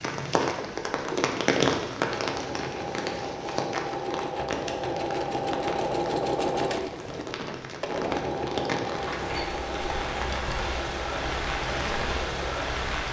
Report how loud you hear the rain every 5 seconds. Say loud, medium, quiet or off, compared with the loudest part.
loud, medium, loud.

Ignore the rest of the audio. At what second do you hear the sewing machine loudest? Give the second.
6 s.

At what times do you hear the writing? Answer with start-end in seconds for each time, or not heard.
not heard.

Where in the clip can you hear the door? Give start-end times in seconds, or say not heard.
8.9-9.7.